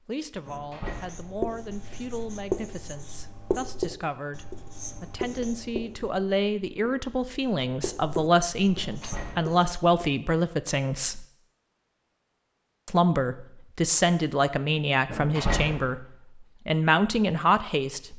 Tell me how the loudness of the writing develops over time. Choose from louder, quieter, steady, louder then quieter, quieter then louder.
quieter then louder.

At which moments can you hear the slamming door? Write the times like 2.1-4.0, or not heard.
0.5-1.4, 8.8-9.6, 15.1-15.9.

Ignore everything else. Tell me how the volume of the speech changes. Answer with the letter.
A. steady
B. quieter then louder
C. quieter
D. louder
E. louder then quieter
D.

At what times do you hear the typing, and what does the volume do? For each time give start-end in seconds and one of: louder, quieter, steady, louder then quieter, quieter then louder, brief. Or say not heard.
not heard.